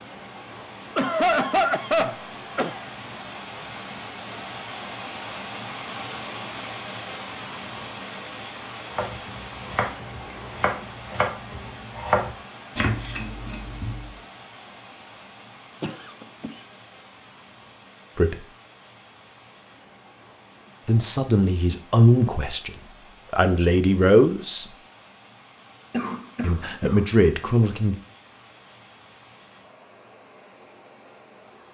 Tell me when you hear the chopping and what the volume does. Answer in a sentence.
You can hear the chopping from 8.9 to 14.1 s, getting louder then quieter.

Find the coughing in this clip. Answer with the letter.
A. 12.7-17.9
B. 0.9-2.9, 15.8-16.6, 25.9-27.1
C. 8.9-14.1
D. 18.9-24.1
B.